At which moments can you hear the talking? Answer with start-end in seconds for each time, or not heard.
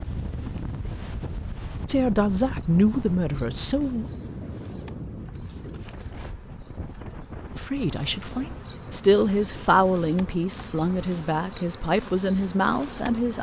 1.9-4.0, 7.5-13.3.